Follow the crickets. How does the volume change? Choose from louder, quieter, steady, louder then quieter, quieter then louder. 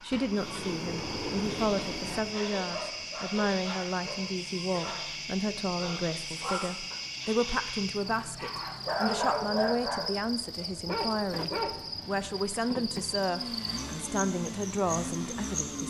steady.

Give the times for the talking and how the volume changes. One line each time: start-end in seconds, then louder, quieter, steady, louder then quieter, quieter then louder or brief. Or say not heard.
0.0-15.8 steady.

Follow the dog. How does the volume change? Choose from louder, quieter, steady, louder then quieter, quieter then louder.
louder.